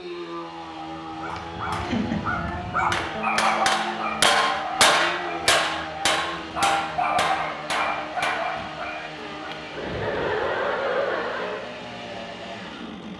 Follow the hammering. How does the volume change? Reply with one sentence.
The volume of the hammering goes up, then down.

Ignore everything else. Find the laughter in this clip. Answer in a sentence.
The laughter can be heard from 1.4 to 2.2 s and from 9.8 to 11.7 s.